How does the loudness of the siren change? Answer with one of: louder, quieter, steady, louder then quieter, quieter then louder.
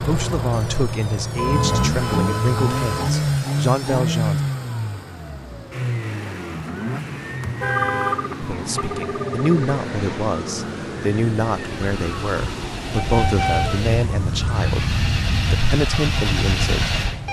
louder.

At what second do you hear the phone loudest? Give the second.
8 s.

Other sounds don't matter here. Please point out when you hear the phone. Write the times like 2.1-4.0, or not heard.
7.7-9.8.